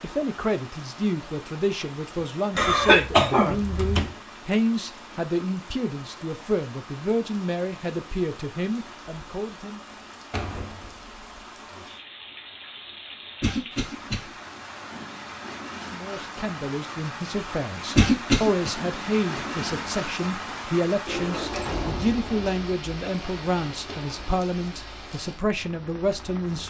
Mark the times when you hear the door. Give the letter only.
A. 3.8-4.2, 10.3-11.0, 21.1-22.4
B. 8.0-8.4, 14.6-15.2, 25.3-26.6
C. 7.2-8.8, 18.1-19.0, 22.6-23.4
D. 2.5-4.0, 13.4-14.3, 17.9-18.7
A.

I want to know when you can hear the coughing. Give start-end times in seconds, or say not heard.
2.5-4.0, 13.4-14.3, 17.9-18.7.